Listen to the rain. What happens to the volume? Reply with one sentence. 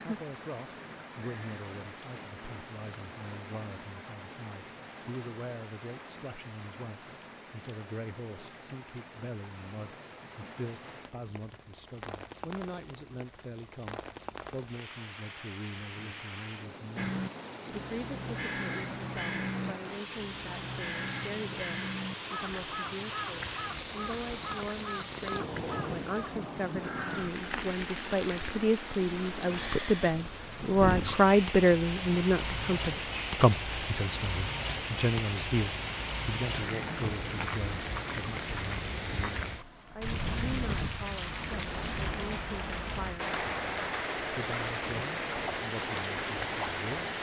The loudness of the rain goes up.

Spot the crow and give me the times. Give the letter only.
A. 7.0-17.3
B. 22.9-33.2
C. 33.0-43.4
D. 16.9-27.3
D.